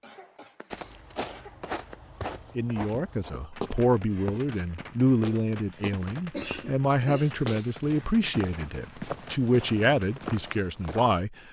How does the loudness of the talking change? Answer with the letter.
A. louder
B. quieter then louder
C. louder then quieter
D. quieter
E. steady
E.